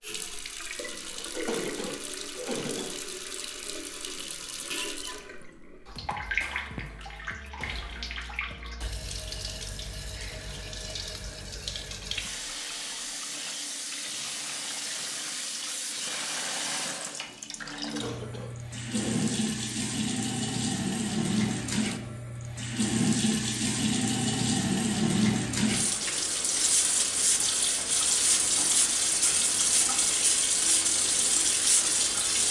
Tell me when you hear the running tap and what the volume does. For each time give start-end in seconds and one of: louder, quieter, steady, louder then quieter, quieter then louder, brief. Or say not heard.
0.0-32.4 louder.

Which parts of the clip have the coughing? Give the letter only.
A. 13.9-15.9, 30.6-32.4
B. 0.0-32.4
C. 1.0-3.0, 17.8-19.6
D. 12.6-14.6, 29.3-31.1
C.